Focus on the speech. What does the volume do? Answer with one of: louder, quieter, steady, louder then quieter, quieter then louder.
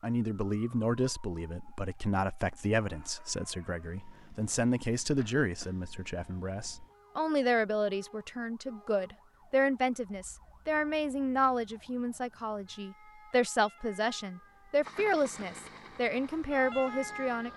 steady.